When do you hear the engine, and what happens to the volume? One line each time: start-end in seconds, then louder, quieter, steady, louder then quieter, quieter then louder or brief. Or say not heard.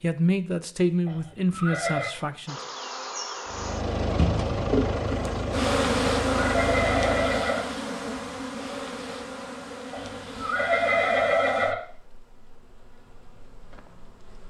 3.5-7.5 steady.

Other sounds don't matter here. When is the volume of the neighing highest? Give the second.
11 s.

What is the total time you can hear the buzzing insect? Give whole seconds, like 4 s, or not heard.
12 s.